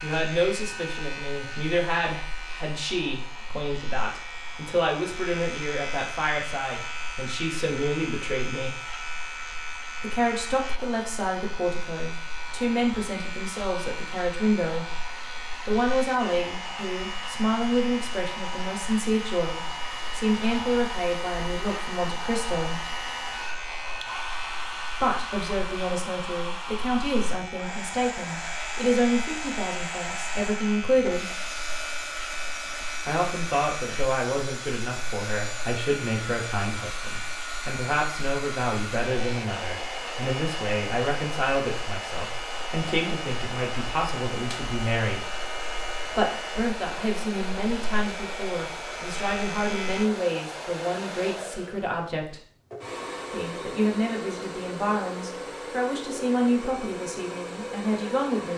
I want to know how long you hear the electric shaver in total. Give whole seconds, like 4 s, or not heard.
50 s.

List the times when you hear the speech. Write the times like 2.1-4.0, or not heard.
0.0-8.8, 10.0-22.9, 24.9-31.3, 33.0-45.2, 46.0-52.4, 53.3-58.5.